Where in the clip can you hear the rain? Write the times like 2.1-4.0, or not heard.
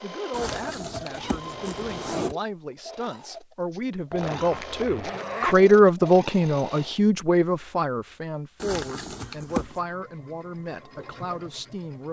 not heard.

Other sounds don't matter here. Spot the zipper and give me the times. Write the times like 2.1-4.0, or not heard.
0.3-2.4, 4.1-5.6, 8.6-9.8.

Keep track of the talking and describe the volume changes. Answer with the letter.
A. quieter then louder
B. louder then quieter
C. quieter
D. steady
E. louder
B.